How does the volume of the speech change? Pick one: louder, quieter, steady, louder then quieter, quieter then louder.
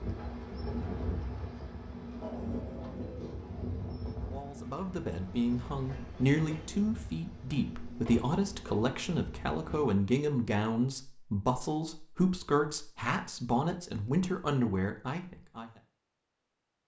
steady.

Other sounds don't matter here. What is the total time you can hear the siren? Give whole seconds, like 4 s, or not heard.
not heard.